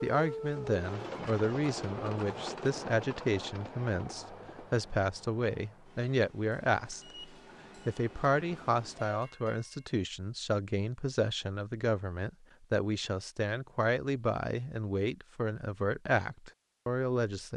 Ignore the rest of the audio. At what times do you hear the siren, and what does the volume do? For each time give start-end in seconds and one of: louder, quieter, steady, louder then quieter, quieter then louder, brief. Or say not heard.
not heard.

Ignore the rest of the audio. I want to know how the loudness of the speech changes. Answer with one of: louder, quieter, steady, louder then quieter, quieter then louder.
steady.